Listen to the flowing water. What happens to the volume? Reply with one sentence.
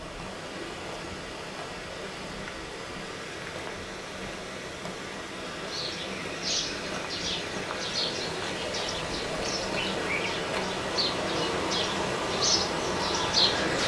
The loudness of the flowing water goes up.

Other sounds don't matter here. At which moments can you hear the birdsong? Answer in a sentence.
You can hear the birdsong from 5.7 to 13.8 s.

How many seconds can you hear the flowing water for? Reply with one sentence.
The flowing water can be heard for 14 seconds in total.